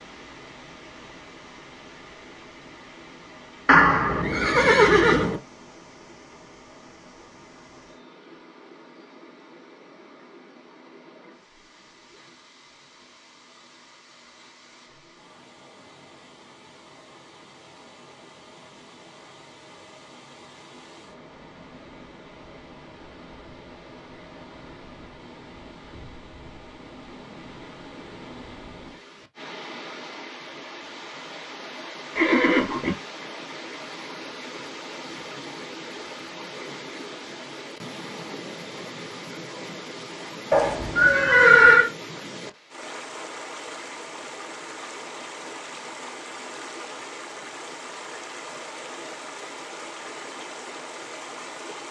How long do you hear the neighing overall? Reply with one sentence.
The neighing can be heard for 4 seconds in total.